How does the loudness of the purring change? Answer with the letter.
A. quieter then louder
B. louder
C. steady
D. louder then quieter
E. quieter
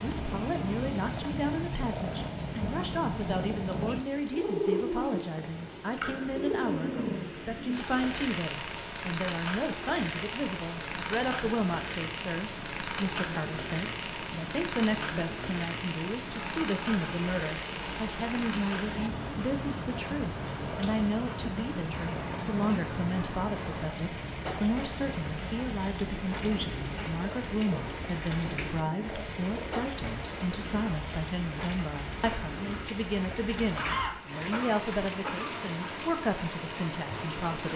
E.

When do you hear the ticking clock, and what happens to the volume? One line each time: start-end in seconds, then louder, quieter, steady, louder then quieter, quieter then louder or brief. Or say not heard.
not heard.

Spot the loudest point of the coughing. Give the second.
34 s.